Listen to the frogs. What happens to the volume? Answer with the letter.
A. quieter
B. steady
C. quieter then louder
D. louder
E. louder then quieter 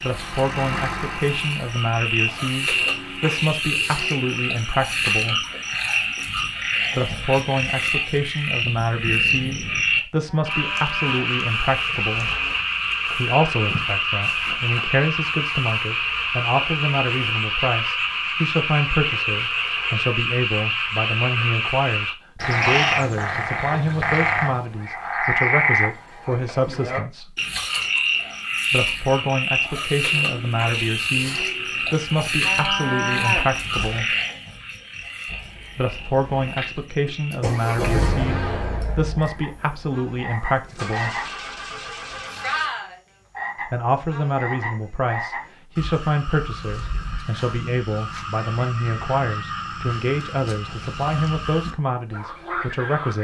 A.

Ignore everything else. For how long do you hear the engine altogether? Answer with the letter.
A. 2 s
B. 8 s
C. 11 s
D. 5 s
C.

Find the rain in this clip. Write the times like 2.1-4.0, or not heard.
not heard.